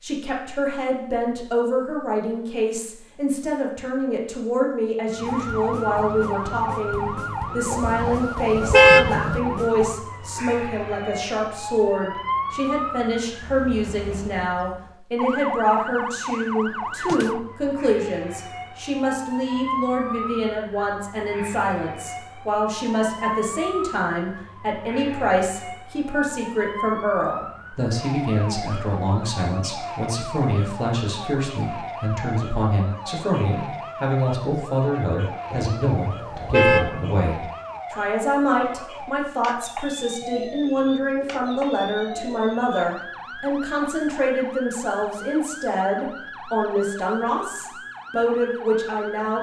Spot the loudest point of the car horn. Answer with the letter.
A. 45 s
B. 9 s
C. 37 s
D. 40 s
B.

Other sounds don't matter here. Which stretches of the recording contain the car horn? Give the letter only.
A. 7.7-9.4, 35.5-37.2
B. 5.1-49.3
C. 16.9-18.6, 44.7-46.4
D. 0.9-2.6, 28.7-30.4
A.